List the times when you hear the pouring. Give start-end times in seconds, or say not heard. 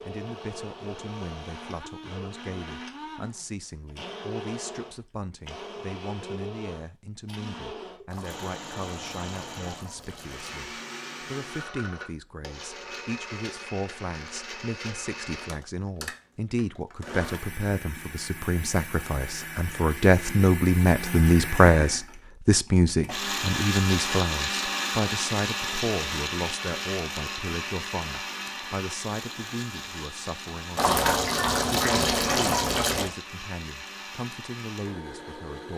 8.1-10.6, 30.8-33.1.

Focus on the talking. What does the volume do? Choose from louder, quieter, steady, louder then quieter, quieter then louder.
louder then quieter.